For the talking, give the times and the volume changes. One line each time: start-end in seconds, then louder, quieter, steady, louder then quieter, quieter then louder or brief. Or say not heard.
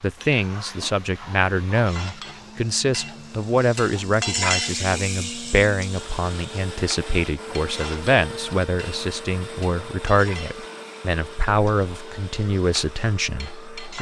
0.0-13.9 steady.